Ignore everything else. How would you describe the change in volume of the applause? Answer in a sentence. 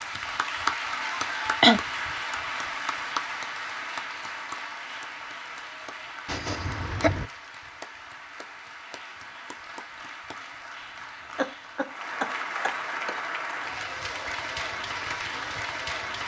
The loudness of the applause goes down, then up.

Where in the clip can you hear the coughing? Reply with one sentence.
The coughing can be heard from 0.8 to 1.8 s, from 6.2 to 7.2 s and from 11.3 to 13.2 s.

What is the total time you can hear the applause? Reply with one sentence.
The applause can be heard for 16 seconds in total.